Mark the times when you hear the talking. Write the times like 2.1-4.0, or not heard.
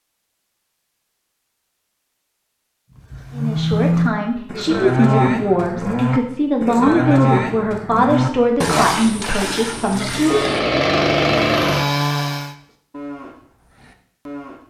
3.4-10.4.